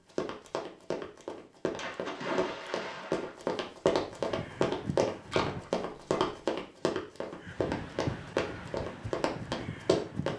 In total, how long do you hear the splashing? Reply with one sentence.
The splashing can be heard for 3 seconds in total.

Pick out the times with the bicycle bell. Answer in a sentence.
The bicycle bell can't be heard in this clip.